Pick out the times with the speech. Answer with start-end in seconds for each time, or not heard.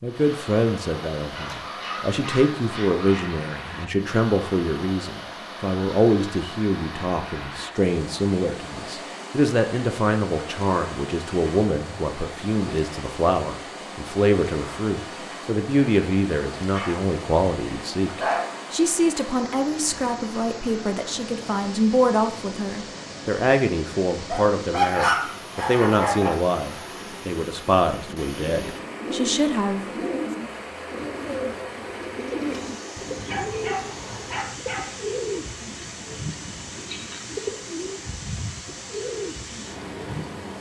0.0-30.1.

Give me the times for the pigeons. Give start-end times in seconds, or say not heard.
28.4-40.4.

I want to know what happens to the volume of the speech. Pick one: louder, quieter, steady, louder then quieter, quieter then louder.
steady.